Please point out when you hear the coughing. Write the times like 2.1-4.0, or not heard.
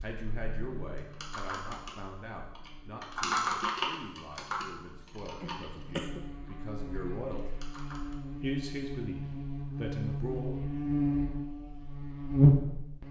5.4-6.2.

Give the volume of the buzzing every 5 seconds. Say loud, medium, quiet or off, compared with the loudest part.
quiet, quiet, loud.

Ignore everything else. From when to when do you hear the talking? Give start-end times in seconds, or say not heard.
0.0-7.4, 8.4-10.6.